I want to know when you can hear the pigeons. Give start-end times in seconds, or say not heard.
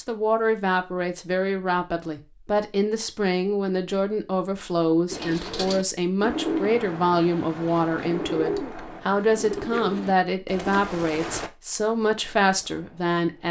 5.1-11.5.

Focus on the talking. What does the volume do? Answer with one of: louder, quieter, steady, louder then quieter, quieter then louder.
steady.